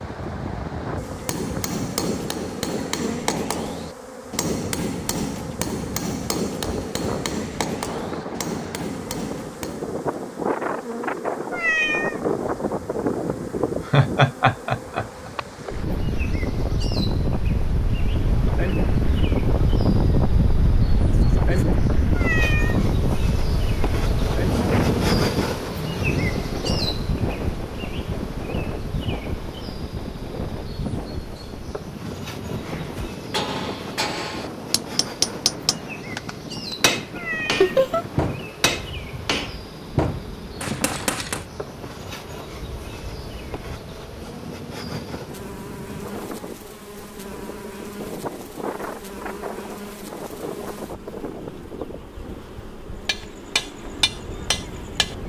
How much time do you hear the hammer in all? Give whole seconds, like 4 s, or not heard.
20 s.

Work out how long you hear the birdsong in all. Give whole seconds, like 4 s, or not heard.
not heard.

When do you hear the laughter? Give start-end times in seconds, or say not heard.
13.8-15.3, 21.1-21.8, 37.6-38.0.